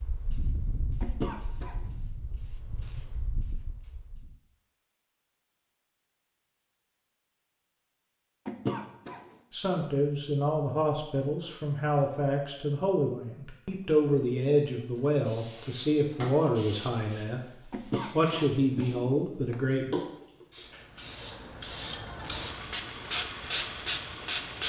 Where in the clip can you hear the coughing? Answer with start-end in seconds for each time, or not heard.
1.0-1.9, 8.4-9.3, 17.7-19.6.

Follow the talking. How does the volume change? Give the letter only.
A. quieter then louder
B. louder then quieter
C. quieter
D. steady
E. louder
D.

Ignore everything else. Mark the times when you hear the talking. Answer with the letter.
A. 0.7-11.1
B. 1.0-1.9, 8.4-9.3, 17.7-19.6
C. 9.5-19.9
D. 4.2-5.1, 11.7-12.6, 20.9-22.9
C.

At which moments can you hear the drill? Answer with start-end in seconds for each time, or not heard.
not heard.